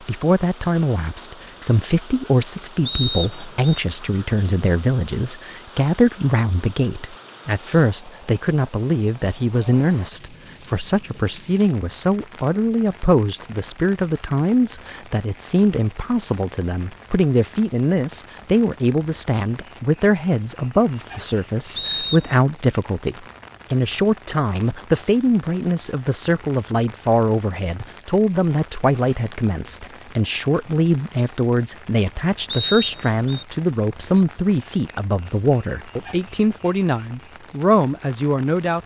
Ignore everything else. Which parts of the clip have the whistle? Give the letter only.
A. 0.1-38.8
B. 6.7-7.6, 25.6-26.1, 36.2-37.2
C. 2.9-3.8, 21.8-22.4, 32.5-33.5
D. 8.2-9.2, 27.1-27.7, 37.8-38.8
C.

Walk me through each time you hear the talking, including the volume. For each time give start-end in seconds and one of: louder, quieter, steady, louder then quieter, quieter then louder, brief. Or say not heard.
0.1-38.8 steady.